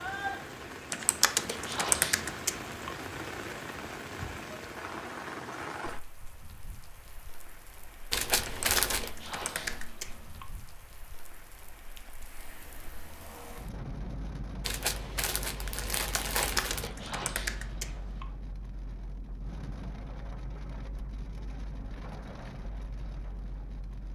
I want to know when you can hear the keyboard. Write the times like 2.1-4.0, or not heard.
0.9-2.9, 8.4-10.4, 16.2-18.2.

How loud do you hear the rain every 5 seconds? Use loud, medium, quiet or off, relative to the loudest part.
loud, medium, medium, medium, medium.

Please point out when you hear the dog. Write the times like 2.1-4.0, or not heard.
not heard.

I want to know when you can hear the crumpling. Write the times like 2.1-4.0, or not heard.
8.1-9.1, 14.6-16.9.